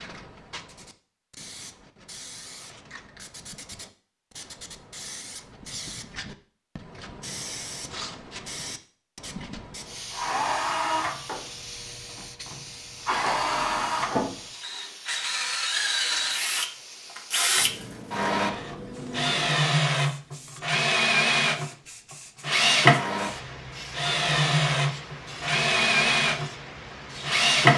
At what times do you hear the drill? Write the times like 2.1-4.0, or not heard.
9.8-27.7.